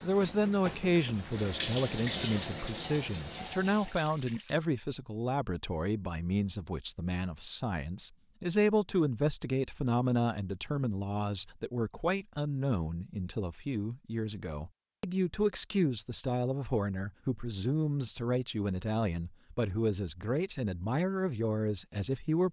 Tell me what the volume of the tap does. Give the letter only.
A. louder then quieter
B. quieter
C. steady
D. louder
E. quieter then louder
A.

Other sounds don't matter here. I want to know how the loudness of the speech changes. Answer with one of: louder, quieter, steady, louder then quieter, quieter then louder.
steady.